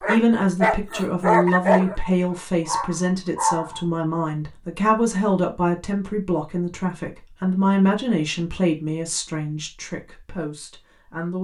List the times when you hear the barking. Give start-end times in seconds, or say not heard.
0.0-3.8.